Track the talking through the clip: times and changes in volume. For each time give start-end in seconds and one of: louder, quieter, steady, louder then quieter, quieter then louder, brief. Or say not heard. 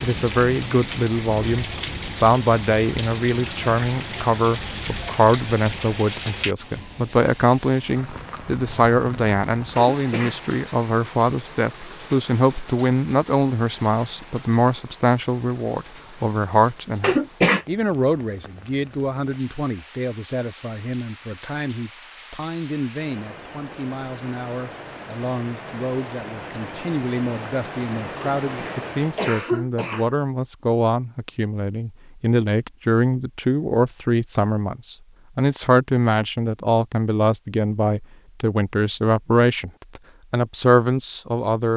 0.0-41.7 quieter then louder.